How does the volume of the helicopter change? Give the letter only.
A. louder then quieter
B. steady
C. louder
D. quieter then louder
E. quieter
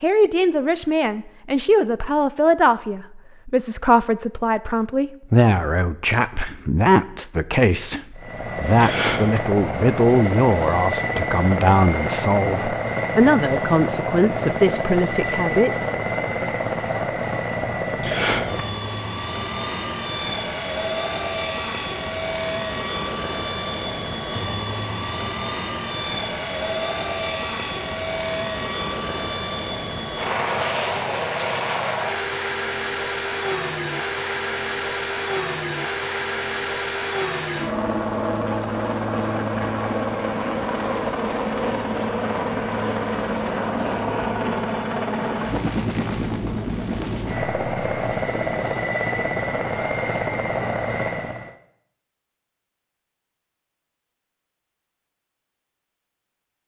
B.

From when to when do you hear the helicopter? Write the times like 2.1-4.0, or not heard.
8.2-51.5.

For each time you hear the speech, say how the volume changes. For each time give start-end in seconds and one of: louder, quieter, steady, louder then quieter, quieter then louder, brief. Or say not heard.
0.0-15.8 steady.